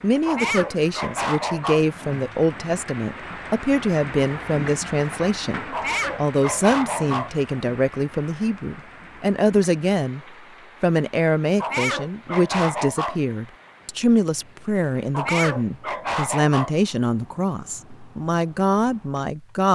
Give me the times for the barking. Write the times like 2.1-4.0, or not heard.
0.2-1.9, 5.7-7.3, 11.6-13.2, 15.1-16.8.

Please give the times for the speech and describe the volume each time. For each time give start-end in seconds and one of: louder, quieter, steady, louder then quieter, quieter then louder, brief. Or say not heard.
0.0-10.2 steady
10.8-19.7 steady.